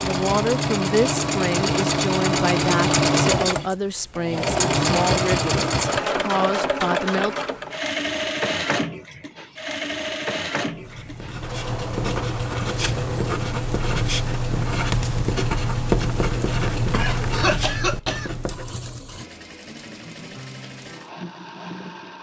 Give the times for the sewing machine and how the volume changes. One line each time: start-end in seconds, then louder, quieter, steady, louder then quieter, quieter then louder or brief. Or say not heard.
0.0-22.1 quieter.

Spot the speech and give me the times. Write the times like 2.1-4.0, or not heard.
0.0-7.3.